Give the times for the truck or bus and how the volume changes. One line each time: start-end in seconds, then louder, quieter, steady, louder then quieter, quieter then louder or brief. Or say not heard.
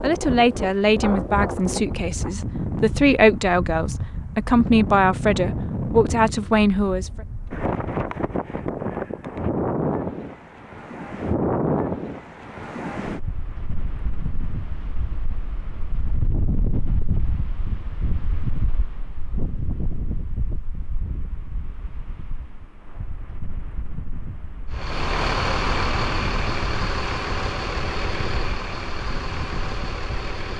24.7-30.5 quieter.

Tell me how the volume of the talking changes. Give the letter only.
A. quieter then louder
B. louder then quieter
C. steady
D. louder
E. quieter
A.